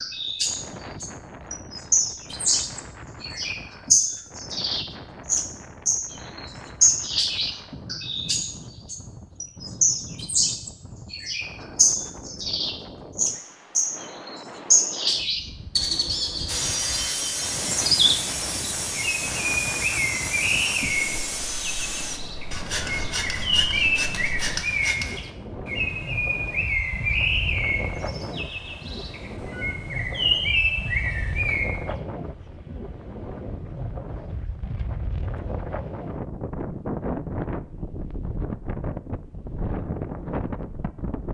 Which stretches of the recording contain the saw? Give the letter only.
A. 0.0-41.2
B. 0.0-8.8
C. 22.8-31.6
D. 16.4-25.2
D.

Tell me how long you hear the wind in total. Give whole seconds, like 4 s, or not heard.
41 s.